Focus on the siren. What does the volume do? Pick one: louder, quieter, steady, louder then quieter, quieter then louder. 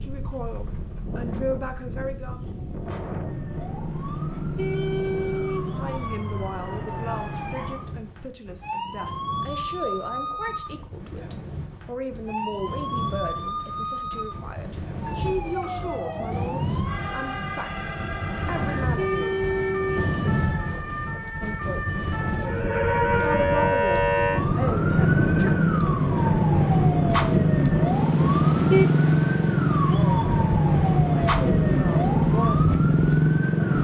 louder.